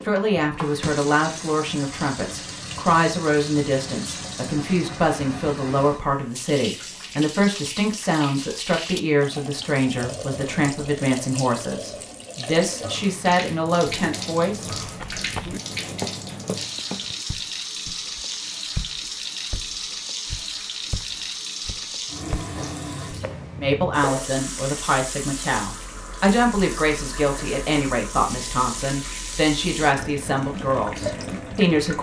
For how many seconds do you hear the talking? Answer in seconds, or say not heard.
23 s.